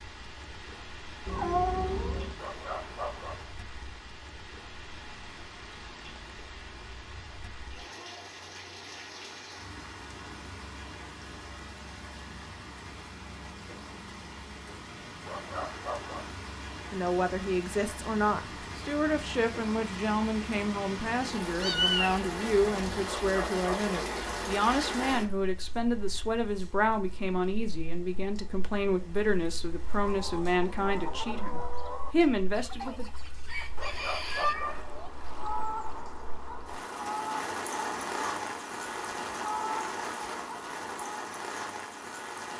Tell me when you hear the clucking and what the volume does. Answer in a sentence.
You can hear the clucking from 29.9 to 41.2 s, at a steady volume.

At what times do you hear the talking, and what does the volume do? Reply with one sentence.
You can hear the talking from 16.9 to 33.0 s, at a steady volume.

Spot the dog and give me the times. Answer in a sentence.
The dog can be heard from 2.4 to 3.5 s, from 15.2 to 16.4 s, from 23.1 to 24.0 s and from 33.8 to 34.9 s.